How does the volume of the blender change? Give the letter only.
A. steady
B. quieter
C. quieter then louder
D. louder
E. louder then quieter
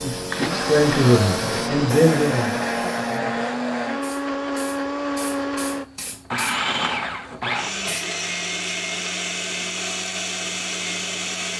A.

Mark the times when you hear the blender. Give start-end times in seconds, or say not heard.
0.1-11.5.